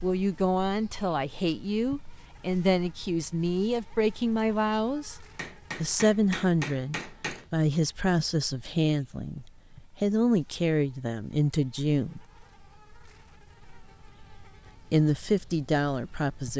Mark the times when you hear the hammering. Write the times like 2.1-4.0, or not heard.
5.3-7.5.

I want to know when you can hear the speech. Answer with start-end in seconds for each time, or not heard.
0.0-5.2, 5.8-12.2, 14.9-16.5.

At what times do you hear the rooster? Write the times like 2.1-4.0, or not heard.
not heard.